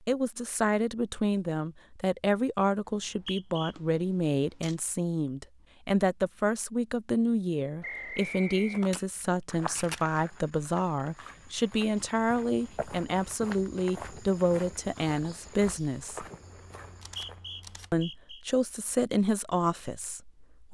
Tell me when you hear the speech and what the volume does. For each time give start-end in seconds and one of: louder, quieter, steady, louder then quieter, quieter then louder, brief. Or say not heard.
0.1-16.2 steady
17.9-20.6 brief.